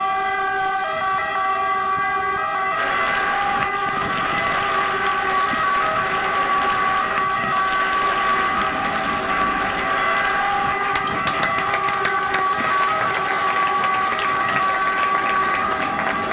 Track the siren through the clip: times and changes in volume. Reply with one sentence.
The siren can be heard from 0.0 to 16.2 s, at a steady volume.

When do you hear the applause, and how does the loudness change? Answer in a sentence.
You can hear the applause from 2.8 to 16.2 s, at a steady volume.